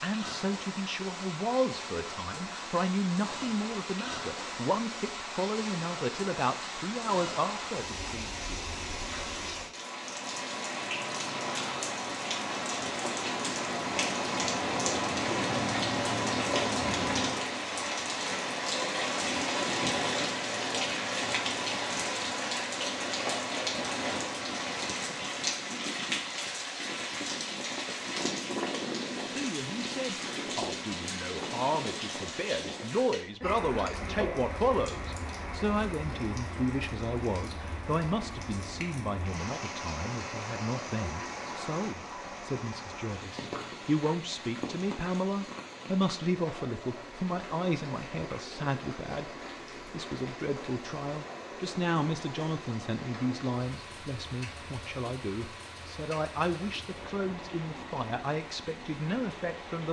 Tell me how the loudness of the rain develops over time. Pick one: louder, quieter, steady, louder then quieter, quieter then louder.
louder then quieter.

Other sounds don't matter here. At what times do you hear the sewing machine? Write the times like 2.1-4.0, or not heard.
not heard.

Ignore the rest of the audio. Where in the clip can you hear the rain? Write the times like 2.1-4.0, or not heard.
0.0-59.8.